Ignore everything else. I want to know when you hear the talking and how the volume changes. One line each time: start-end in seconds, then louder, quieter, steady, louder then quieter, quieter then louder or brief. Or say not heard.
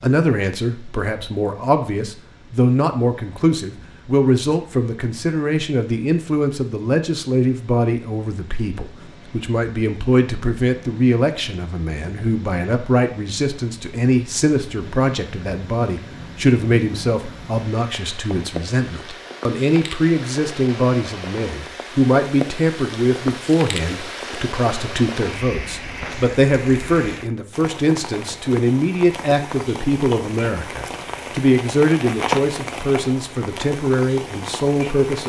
0.0-35.2 steady.